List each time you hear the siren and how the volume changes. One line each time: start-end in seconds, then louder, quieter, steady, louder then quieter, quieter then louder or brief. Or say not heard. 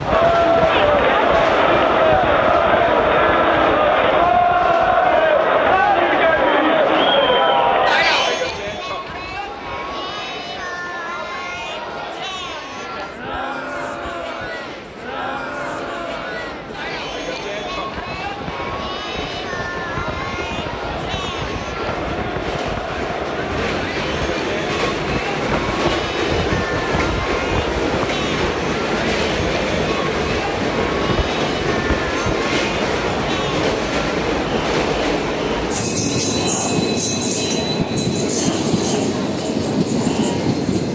not heard.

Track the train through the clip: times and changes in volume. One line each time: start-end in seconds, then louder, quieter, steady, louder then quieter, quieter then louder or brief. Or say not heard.
0.0-40.9 quieter then louder.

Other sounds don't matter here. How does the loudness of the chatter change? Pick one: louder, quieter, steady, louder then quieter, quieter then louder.
quieter.